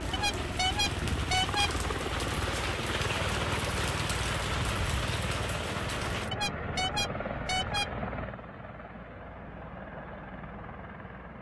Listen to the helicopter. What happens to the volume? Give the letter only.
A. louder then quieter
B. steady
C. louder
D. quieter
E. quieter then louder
D.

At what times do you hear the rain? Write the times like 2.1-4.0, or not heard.
0.0-6.3.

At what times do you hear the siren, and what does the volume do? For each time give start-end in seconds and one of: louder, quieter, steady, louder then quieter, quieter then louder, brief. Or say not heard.
not heard.